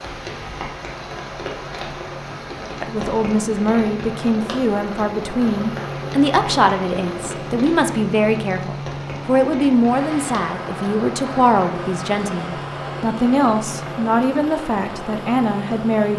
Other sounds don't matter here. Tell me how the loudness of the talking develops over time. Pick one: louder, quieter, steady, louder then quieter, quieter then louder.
steady.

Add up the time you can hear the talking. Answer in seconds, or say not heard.
13 s.